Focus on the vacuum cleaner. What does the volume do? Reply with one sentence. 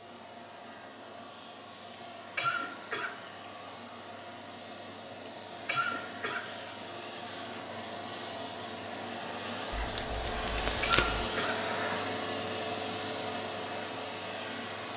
The volume of the vacuum cleaner goes up.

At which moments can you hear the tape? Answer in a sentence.
The tape can be heard from 9.8 to 11.2 s.